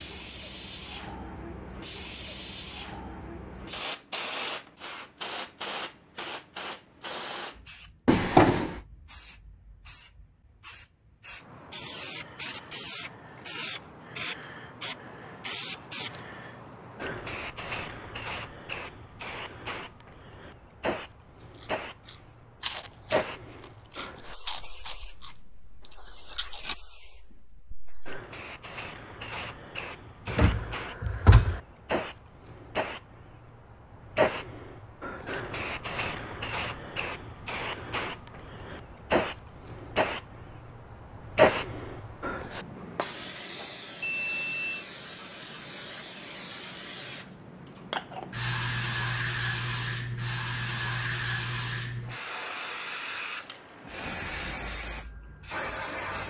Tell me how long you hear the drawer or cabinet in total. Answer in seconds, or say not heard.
2 s.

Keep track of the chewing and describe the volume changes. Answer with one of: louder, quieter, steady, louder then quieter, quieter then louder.
quieter.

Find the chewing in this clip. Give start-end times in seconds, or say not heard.
21.4-26.8.